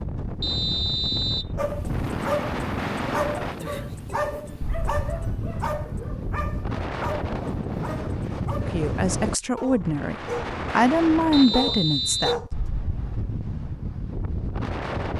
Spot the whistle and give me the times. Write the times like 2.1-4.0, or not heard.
0.4-1.5, 11.3-12.3.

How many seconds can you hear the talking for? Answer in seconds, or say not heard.
4 s.